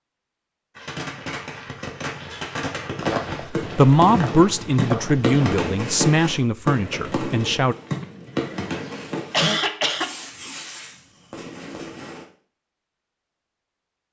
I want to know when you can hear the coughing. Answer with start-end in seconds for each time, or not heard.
8.0-10.1.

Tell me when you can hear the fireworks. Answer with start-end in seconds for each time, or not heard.
0.8-12.2.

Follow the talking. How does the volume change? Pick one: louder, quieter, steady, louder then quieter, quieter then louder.
quieter.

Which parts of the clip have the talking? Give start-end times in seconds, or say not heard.
3.5-7.8.